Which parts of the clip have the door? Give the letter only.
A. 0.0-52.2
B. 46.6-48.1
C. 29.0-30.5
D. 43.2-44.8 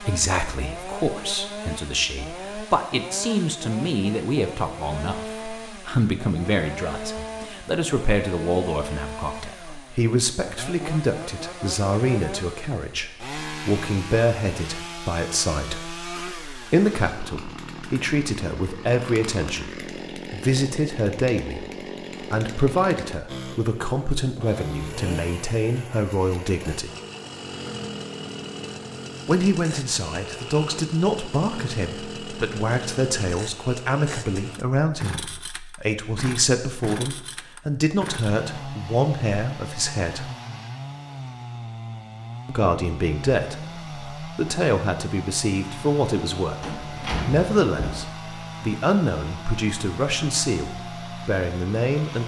B.